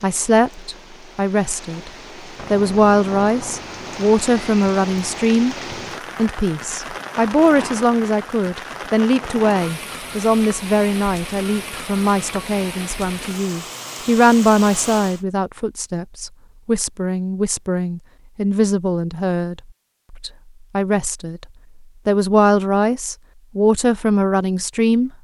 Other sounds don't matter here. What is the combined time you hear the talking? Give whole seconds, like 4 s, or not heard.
23 s.